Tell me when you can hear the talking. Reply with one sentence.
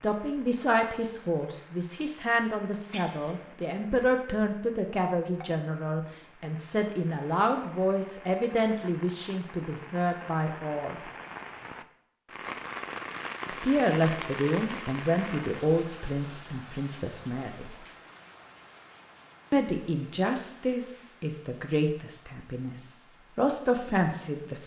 You can hear the talking from 0.0 to 10.9 s, from 13.5 to 17.7 s and from 19.5 to 24.6 s.